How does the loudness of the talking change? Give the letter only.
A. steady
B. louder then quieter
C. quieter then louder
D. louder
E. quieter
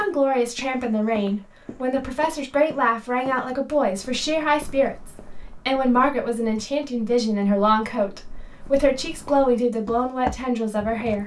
A.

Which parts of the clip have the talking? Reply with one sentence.
You can hear the talking from 0.0 to 11.2 s.